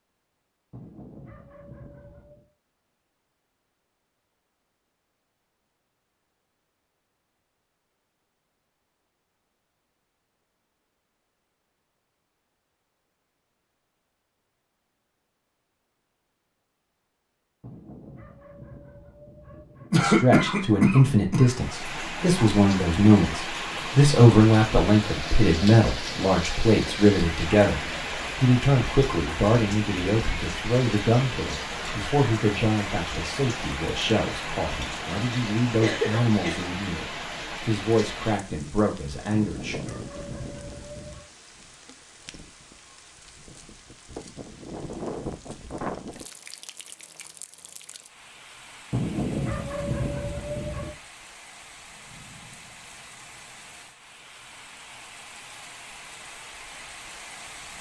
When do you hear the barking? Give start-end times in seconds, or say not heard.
0.7-2.5, 17.6-19.9, 39.3-41.2, 48.9-51.0.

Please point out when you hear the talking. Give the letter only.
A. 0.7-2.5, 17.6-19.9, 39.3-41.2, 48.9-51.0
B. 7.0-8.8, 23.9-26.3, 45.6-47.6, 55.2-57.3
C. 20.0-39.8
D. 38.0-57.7
C.